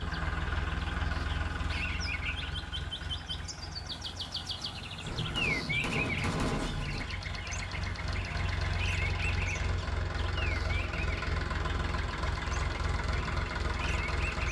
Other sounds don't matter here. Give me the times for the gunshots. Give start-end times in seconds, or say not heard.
5.0-7.0.